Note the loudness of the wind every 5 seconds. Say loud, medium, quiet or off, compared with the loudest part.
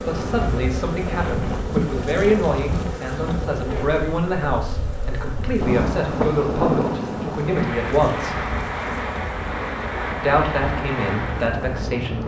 medium, loud, loud.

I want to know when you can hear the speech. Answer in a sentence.
The speech can be heard from 0.1 to 8.4 s and from 10.2 to 12.2 s.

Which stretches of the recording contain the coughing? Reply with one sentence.
The coughing can't be heard in this clip.